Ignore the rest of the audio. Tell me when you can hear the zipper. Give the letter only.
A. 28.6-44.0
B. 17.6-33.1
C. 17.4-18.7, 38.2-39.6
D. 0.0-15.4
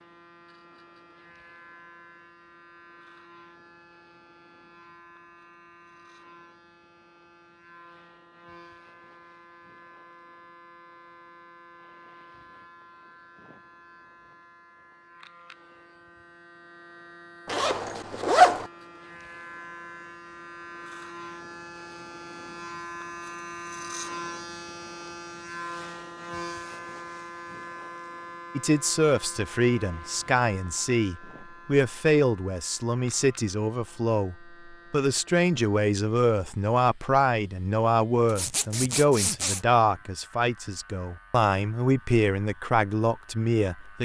C.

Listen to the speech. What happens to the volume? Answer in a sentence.
The loudness of the speech stays about the same.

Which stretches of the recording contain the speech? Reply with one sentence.
The speech can be heard from 28.6 to 44.0 s.